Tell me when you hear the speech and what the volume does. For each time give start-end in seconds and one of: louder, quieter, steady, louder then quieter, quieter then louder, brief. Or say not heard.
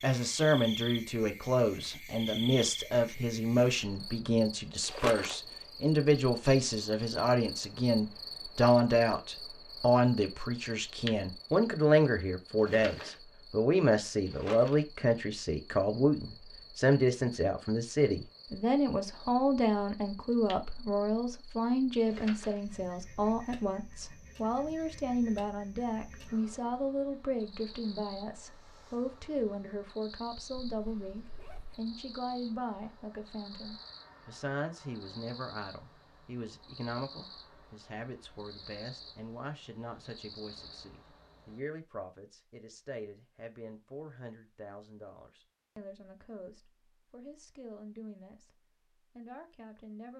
0.0-48.5 quieter
49.1-50.1 brief.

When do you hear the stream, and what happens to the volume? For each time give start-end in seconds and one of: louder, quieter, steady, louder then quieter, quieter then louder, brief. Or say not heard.
not heard.